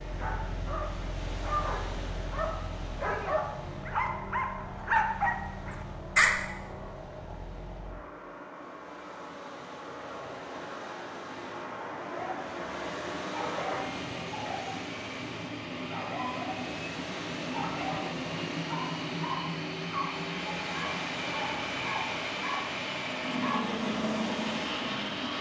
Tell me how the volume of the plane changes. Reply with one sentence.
The loudness of the plane goes up.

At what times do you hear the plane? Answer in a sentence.
The plane can be heard from 0.0 to 25.3 s.